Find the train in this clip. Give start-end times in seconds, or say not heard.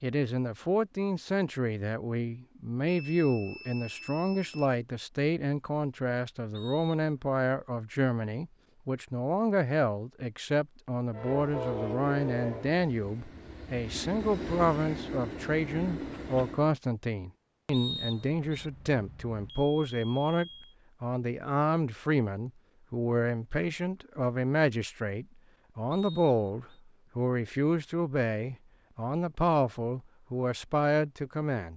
11.1-16.8.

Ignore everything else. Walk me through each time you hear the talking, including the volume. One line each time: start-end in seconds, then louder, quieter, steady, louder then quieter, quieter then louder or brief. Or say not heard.
0.0-31.7 steady.